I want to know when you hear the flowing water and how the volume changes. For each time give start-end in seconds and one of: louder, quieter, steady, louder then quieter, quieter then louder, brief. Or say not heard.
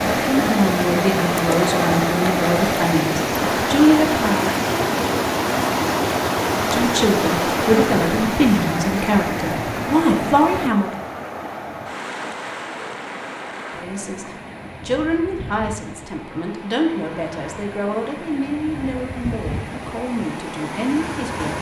0.0-21.5 quieter.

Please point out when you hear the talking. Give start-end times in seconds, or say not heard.
0.2-4.5, 6.5-10.9, 13.7-21.5.